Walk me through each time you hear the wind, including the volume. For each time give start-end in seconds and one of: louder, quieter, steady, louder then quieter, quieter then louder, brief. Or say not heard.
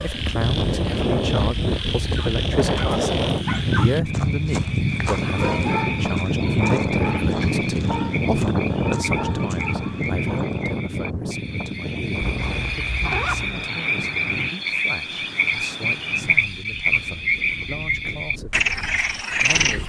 0.0-19.8 quieter.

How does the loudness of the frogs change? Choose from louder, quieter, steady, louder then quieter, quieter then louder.
louder.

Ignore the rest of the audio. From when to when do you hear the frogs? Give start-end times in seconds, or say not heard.
0.0-19.8.